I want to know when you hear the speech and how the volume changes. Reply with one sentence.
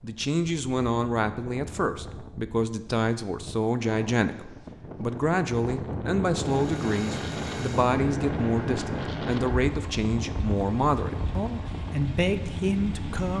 You can hear the speech from 0.0 to 13.3 s, at a steady volume.